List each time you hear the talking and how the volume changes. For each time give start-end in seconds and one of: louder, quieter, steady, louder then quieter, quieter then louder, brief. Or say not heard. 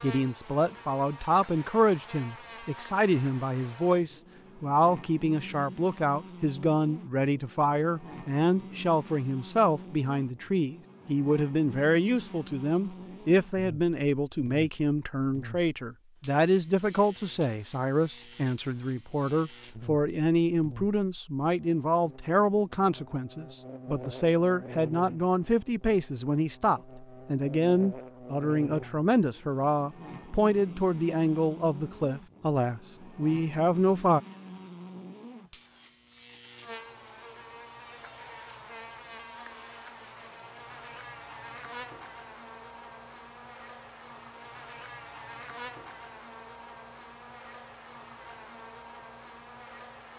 0.0-34.2 steady.